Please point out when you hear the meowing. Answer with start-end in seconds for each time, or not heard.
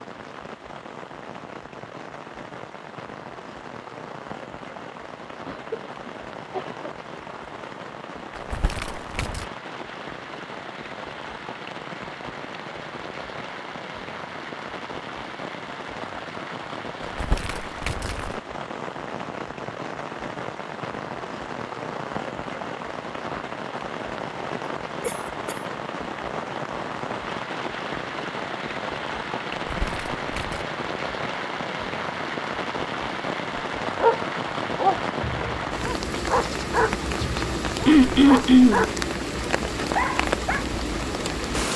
not heard.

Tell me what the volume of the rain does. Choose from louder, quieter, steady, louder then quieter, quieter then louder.
louder.